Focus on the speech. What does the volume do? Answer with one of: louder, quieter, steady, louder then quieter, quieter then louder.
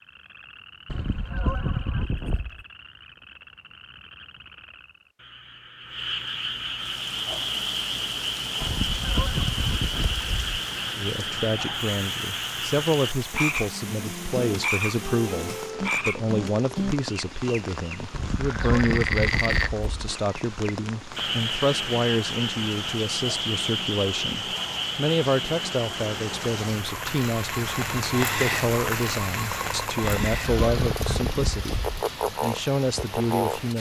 steady.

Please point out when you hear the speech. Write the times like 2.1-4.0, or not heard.
10.9-33.7.